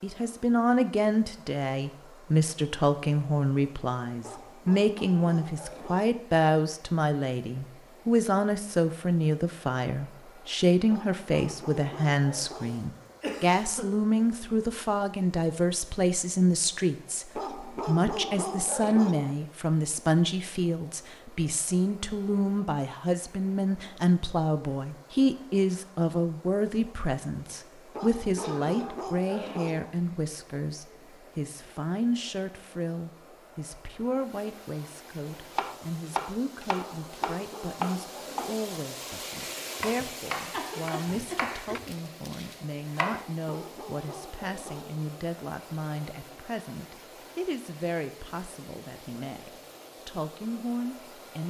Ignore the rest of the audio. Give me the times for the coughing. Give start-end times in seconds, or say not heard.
12.6-13.8, 28.4-29.0, 39.8-42.0.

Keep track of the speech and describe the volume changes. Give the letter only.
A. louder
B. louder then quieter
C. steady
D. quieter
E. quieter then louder
D.